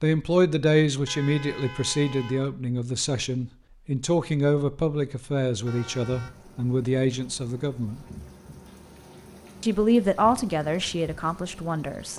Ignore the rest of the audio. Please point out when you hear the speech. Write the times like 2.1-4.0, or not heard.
0.0-8.1, 9.6-12.1.